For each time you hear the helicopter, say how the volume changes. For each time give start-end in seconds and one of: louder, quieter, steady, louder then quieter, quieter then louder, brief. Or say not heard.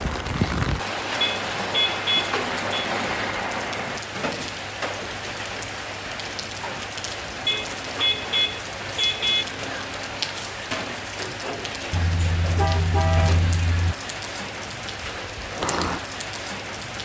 0.0-4.0 louder.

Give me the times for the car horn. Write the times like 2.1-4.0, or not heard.
1.2-2.9, 7.5-9.4, 11.9-13.9.